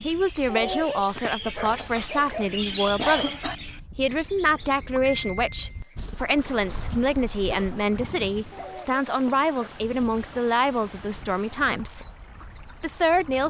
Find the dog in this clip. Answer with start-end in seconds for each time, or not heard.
0.5-2.6, 8.5-9.8.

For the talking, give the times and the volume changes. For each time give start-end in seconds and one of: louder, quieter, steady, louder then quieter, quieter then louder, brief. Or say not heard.
0.0-12.1 steady
12.8-13.4 brief.